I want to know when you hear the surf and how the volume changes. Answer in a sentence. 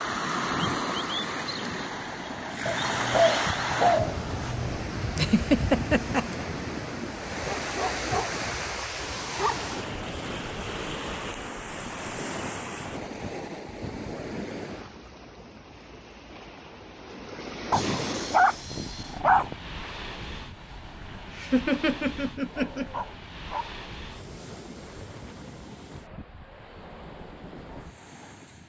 The surf can be heard from 0.0 to 28.6 s, getting quieter.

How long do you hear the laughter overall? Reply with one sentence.
You can hear the laughter for 3 seconds altogether.